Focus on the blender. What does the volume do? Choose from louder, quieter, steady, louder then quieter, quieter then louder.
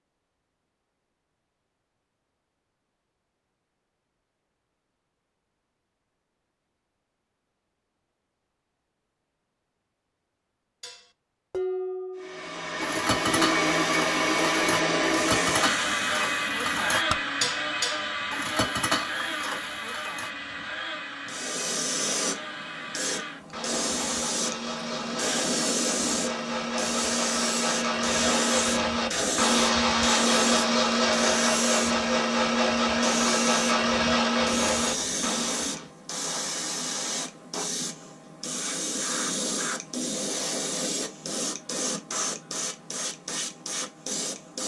quieter then louder.